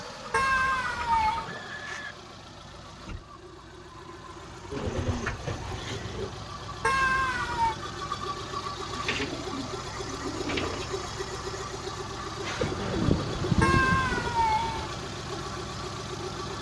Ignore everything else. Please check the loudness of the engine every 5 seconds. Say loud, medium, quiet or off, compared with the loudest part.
medium, loud, loud, loud.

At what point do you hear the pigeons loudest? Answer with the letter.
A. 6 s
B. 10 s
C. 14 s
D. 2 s
C.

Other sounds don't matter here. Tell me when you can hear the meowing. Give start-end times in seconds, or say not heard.
0.3-1.5, 6.8-7.8, 13.6-14.9.